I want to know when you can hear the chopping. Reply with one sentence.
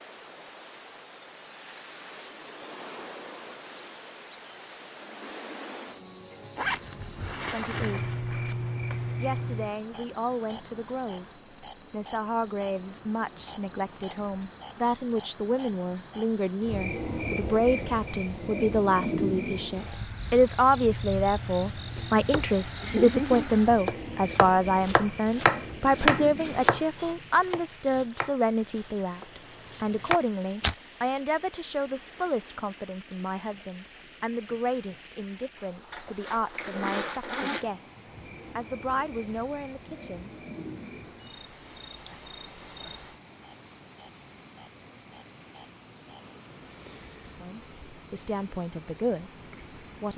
You can hear the chopping from 21.9 to 30.8 s.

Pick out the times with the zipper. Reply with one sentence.
You can hear the zipper from 6.5 to 8.6 s and from 35.9 to 37.7 s.